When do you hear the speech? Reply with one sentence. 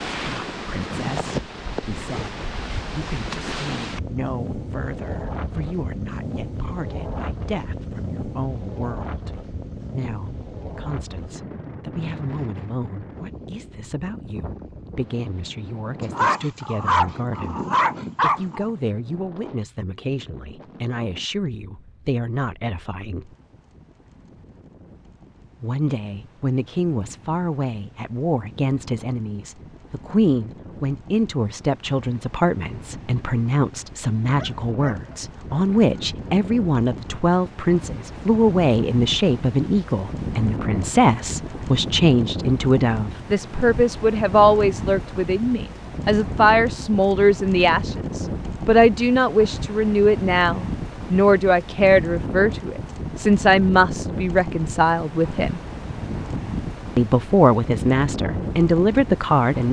You can hear the speech from 0.1 to 9.3 s, from 9.9 to 17.6 s, from 18.2 to 23.3 s, from 25.6 to 55.6 s and from 57.0 to 59.6 s.